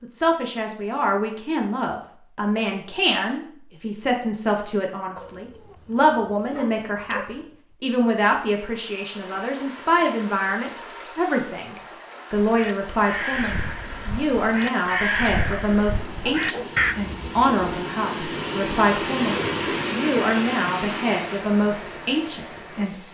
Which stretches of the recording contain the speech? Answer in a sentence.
The speech can be heard from 0.0 to 23.1 s.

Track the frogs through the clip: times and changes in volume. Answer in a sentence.
The frogs can't be heard in this clip.